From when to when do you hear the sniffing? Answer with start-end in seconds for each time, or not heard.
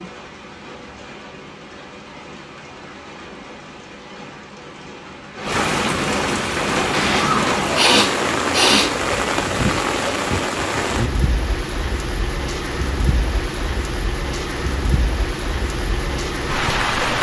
6.9-8.9.